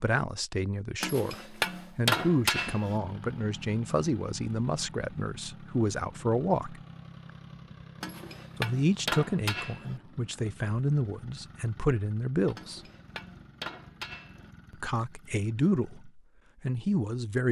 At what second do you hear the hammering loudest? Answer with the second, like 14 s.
2 s.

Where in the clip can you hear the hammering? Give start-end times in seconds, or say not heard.
1.0-3.0, 8.0-10.0, 12.6-14.5.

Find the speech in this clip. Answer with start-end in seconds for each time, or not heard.
0.0-6.8, 8.6-12.8, 14.7-17.4.